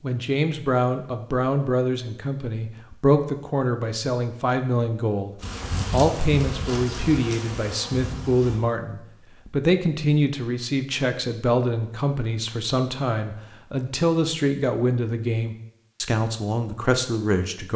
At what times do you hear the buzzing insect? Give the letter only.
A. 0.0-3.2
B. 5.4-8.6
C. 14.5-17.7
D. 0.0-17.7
B.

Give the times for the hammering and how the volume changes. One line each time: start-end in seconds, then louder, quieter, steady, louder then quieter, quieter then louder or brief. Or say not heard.
not heard.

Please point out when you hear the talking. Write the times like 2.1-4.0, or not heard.
0.0-17.7.